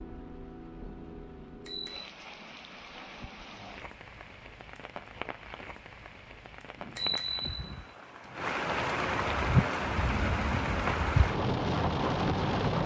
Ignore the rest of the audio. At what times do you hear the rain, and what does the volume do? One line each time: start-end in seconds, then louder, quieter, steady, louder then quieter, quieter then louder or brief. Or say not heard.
0.0-12.8 louder.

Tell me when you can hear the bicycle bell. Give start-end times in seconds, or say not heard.
1.4-2.0, 6.8-8.3.